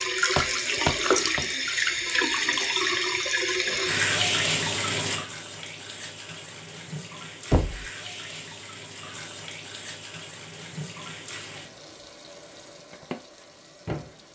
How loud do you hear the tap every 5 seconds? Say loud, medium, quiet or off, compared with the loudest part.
loud, quiet, quiet.